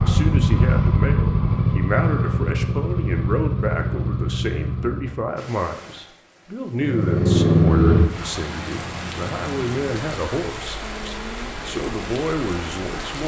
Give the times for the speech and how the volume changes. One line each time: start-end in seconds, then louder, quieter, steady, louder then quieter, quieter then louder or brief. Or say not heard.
0.0-13.2 steady.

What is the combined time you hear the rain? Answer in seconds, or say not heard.
8 s.